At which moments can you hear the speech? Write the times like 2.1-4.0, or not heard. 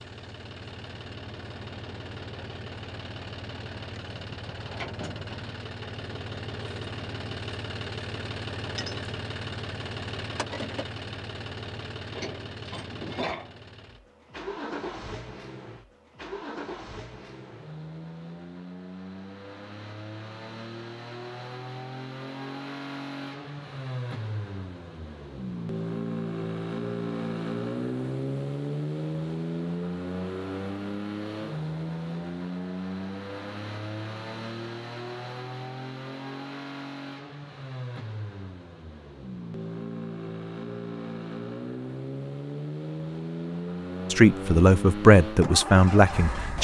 44.1-46.5.